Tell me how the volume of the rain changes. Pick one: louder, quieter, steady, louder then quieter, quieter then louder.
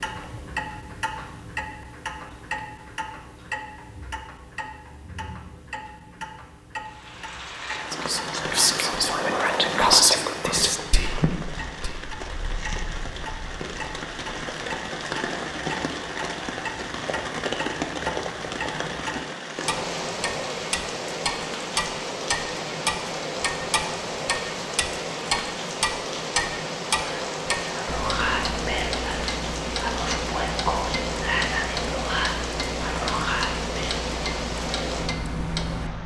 steady.